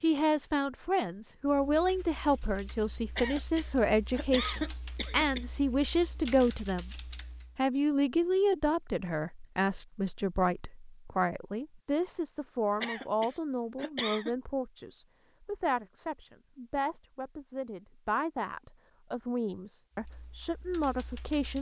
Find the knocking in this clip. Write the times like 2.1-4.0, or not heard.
not heard.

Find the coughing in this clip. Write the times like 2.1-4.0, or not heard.
3.1-5.6, 12.8-14.3.